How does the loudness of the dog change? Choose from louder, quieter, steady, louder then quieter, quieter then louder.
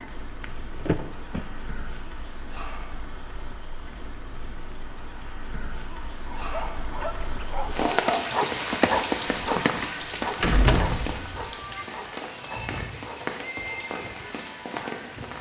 louder then quieter.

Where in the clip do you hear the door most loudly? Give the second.
11 s.